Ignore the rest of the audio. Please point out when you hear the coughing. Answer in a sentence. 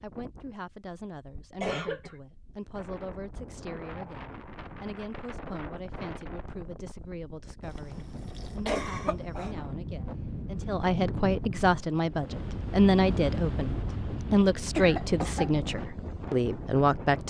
The coughing can be heard from 1.6 to 2.1 s, from 7.6 to 9.6 s and from 14.8 to 15.5 s.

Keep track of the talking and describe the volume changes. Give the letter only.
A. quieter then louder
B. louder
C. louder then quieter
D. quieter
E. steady
B.